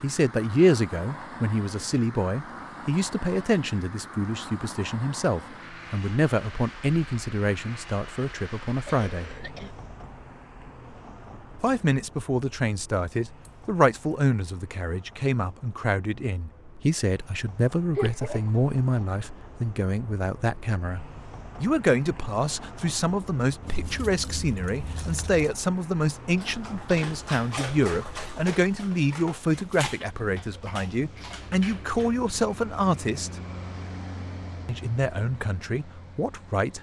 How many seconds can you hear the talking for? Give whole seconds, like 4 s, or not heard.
33 s.